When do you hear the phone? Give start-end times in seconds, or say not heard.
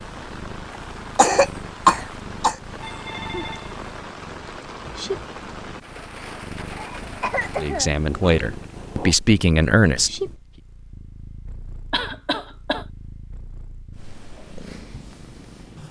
2.8-3.8.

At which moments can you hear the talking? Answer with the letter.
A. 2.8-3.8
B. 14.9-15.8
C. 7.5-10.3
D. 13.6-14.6
C.